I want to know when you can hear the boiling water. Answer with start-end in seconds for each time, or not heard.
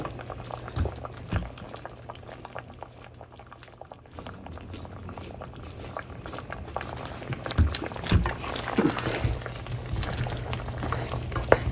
0.0-11.6.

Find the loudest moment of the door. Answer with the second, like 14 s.
8 s.